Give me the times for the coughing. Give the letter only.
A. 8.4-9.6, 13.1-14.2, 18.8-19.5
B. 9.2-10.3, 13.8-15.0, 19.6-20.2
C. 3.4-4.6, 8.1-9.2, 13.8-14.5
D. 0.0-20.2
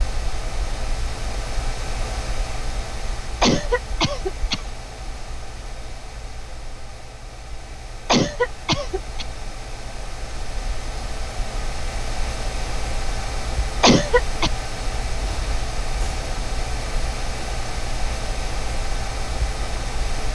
C.